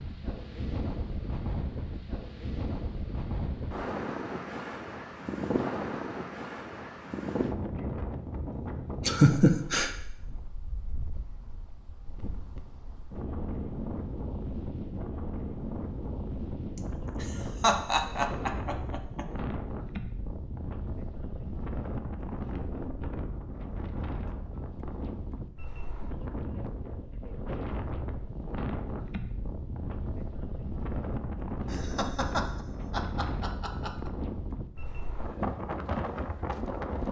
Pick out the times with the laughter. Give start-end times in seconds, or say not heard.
9.1-9.9, 16.8-19.2, 31.7-34.1.